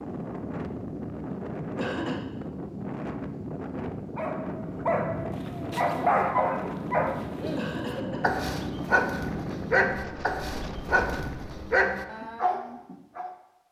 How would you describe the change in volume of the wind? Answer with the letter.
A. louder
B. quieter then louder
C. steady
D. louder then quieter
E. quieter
C.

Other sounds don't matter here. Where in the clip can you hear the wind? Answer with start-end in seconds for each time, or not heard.
0.0-11.7.